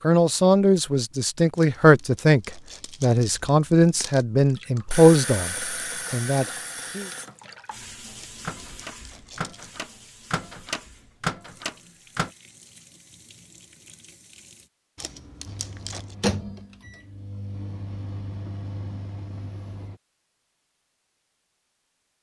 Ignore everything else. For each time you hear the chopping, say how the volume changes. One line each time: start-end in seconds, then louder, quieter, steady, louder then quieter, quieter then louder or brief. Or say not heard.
not heard.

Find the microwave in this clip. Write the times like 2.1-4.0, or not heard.
8.4-12.3, 15.4-19.9.